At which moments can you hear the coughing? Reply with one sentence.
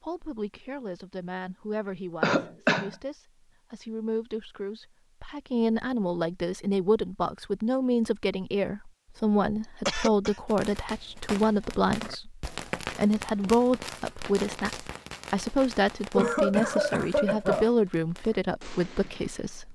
You can hear the coughing from 2.2 to 2.9 s, from 9.8 to 10.4 s and from 16.1 to 17.7 s.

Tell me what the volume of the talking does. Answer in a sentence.
The volume of the talking goes up.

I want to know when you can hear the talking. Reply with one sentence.
You can hear the talking from 0.0 to 19.7 s.